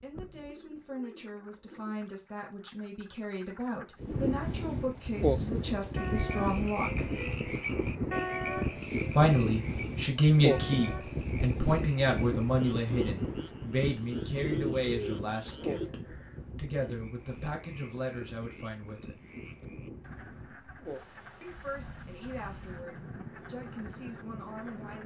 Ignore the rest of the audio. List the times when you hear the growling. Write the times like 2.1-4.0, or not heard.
not heard.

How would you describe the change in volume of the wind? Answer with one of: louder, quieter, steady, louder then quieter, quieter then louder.
quieter.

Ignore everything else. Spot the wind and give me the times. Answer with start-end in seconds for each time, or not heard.
4.0-25.0.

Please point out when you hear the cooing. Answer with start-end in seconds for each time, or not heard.
0.4-2.0, 14.3-15.9.